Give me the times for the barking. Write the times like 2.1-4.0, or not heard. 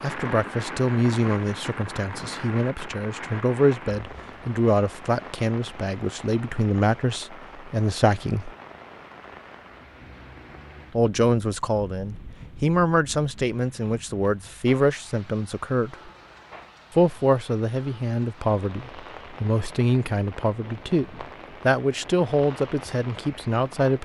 not heard.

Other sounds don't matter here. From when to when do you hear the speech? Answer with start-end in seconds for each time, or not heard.
0.0-8.5, 10.9-16.1, 16.9-24.0.